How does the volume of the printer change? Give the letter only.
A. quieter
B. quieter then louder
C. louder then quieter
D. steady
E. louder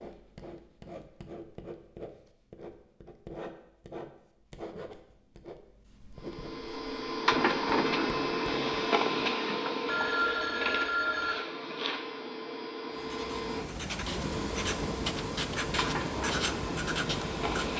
A.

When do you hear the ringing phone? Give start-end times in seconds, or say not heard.
9.8-11.3.